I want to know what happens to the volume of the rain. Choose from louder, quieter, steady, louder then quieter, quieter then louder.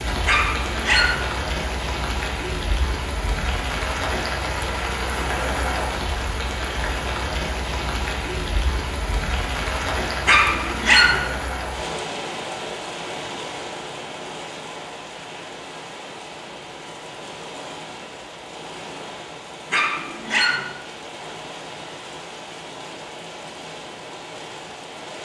quieter.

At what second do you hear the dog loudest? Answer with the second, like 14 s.
11 s.